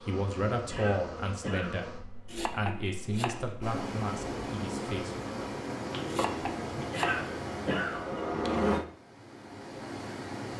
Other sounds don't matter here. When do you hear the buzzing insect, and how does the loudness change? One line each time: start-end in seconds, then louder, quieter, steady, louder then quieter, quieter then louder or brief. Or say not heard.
0.0-8.8 quieter then louder.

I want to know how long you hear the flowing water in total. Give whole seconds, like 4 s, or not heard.
7 s.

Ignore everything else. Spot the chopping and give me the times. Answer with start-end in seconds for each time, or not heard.
2.2-3.5, 6.0-7.2.